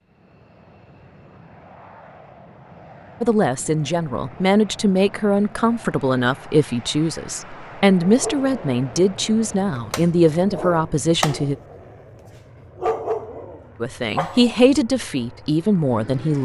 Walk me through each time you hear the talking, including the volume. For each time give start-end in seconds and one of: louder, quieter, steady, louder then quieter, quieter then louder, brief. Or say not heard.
3.2-11.6 steady
13.8-16.3 brief.